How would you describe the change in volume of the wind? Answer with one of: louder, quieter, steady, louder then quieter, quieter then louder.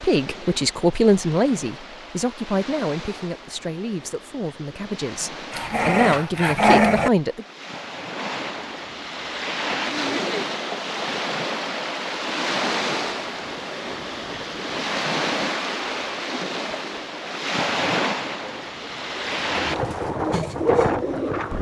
louder.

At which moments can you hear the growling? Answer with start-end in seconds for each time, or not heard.
5.5-7.1.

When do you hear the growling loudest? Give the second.
7 s.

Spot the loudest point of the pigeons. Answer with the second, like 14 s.
21 s.